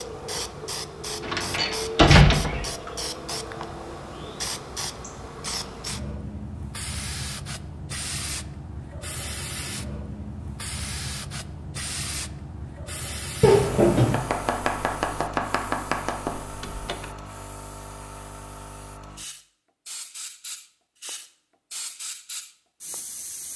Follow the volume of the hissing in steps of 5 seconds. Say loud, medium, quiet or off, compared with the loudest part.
loud, loud, loud, medium, medium.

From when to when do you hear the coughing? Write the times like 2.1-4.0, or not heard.
not heard.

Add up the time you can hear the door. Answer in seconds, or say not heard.
3 s.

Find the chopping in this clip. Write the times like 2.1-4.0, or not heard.
14.1-16.4.